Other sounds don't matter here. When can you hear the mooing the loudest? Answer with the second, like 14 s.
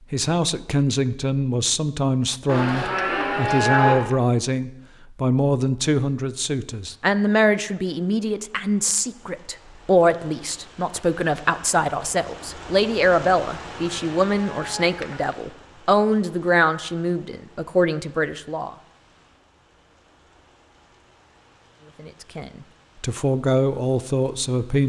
4 s.